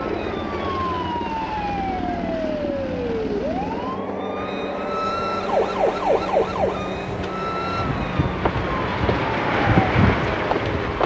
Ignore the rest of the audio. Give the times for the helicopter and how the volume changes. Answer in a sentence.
The helicopter can be heard from 0.0 to 11.0 s, getting quieter then louder.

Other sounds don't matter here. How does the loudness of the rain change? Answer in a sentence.
The volume of the rain goes up.